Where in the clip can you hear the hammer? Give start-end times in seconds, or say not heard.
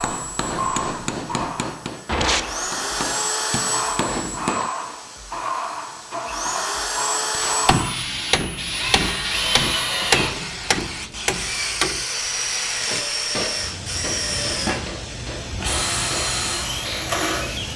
0.0-4.7, 7.7-17.2.